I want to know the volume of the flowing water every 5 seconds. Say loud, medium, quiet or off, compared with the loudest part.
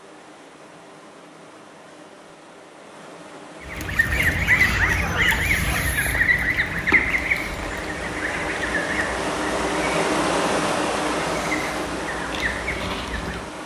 quiet, loud, loud.